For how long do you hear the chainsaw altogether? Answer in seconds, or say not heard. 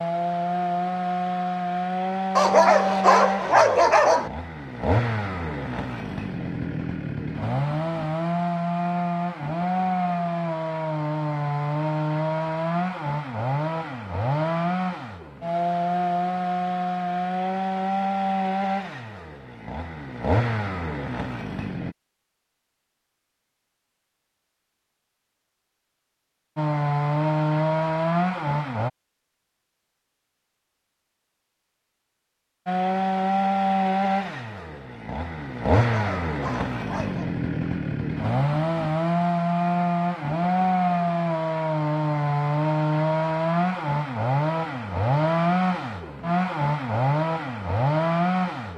40 s.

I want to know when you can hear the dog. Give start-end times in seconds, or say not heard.
2.4-4.3, 35.8-37.3.